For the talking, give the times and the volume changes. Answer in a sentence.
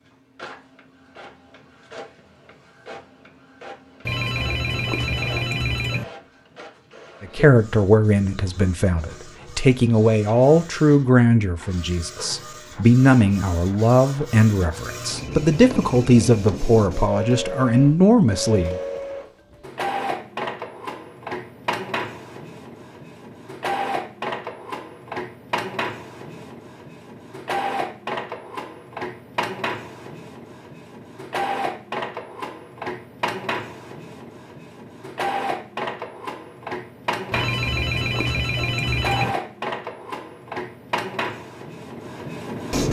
The talking can be heard from 7.2 to 18.8 s, at a steady volume.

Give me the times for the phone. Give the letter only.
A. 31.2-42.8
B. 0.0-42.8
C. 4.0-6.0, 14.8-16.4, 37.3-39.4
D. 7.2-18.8
C.